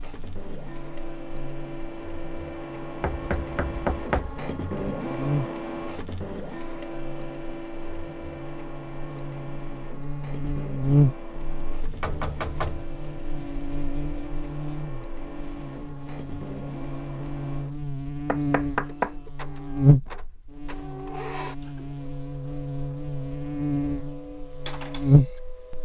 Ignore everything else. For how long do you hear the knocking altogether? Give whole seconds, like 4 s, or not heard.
4 s.